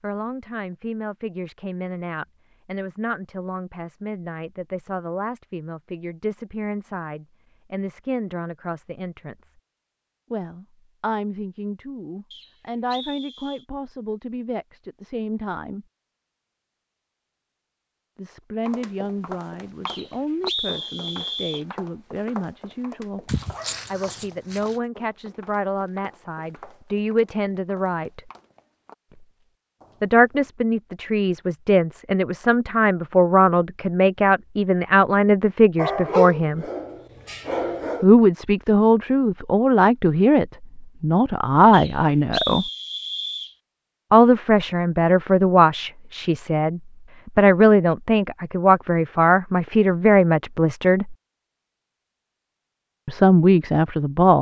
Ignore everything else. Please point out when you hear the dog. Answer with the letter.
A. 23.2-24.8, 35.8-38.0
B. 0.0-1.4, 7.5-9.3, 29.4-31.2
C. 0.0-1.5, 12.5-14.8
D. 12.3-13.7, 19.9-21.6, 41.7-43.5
A.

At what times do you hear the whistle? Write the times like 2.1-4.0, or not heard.
12.3-13.7, 19.9-21.6, 41.7-43.5.